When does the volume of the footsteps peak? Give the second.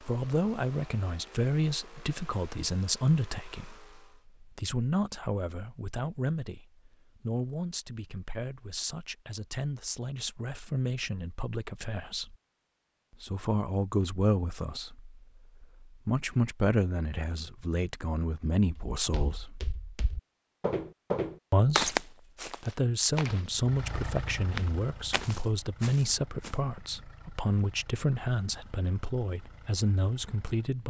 22 s.